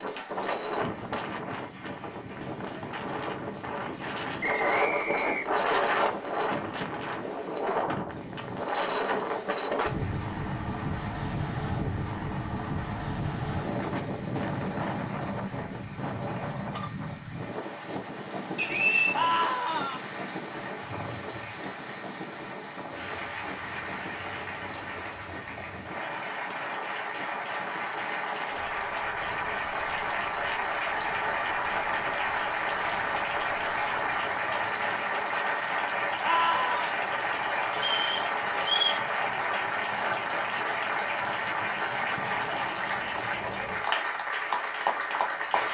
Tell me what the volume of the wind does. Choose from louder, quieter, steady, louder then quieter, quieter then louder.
quieter.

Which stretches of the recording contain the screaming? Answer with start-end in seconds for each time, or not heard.
19.1-20.0, 36.2-36.9.